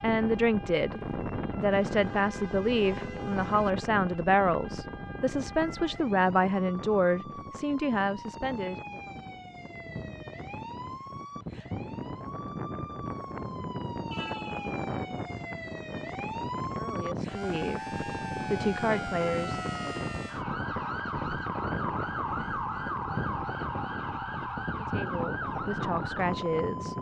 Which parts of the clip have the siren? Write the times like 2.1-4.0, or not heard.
0.0-26.9.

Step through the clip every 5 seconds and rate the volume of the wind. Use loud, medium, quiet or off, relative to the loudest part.
loud, medium, loud, loud, loud, loud.